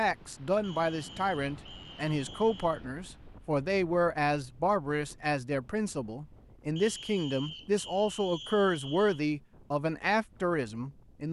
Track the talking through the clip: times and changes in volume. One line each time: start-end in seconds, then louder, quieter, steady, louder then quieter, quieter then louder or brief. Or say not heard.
0.0-11.2 steady.